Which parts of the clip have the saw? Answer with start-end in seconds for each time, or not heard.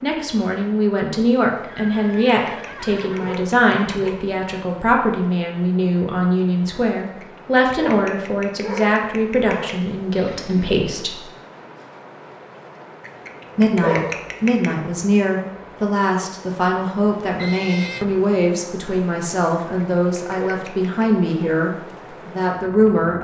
not heard.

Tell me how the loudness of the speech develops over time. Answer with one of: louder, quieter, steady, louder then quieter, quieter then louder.
steady.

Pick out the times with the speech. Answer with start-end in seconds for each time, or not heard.
0.0-11.2, 13.6-23.2.